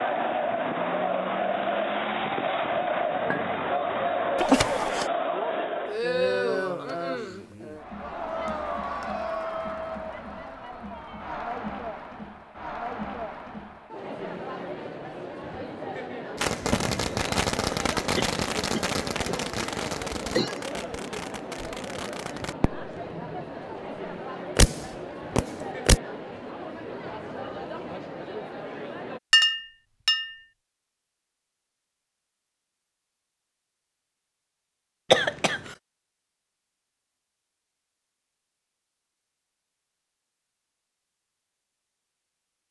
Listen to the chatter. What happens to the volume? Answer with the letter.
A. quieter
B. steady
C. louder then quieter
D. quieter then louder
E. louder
A.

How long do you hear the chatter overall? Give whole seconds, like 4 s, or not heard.
29 s.